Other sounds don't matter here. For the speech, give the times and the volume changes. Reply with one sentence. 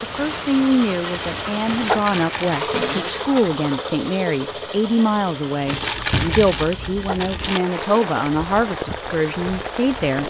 You can hear the speech from 0.0 to 10.2 s, at a steady volume.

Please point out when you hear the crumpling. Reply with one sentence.
The crumpling can be heard from 1.6 to 2.6 s and from 5.7 to 7.6 s.